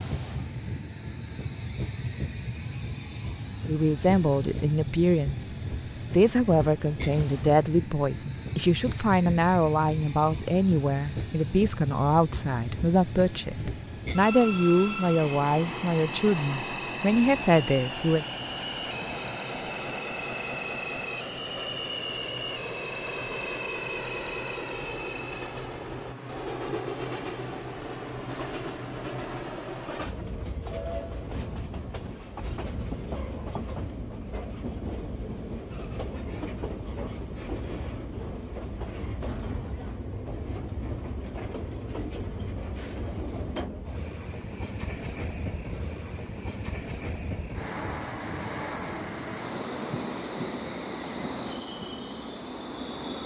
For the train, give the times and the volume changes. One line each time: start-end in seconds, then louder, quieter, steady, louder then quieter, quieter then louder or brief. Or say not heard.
0.0-53.2 steady.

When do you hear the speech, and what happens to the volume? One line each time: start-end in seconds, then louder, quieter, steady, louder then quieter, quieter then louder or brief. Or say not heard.
3.6-18.2 steady.